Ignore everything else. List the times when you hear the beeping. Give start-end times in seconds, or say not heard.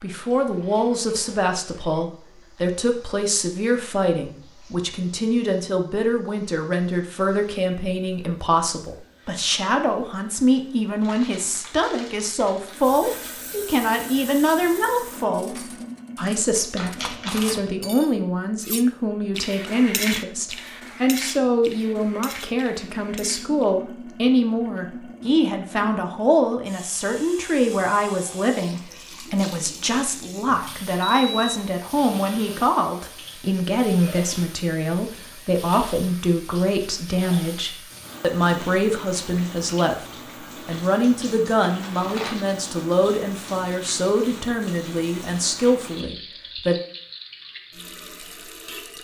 31.0-31.7.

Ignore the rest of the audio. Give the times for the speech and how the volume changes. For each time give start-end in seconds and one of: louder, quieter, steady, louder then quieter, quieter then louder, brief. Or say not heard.
0.0-46.8 steady.